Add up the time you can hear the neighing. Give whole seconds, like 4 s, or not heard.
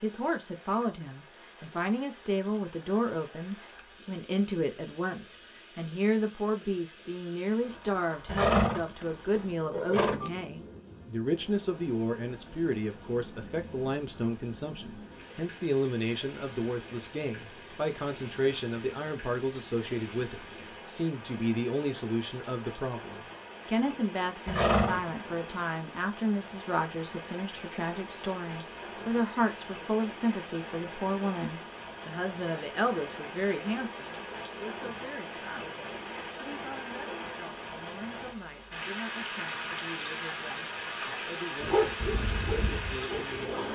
3 s.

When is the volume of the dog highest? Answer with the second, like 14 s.
42 s.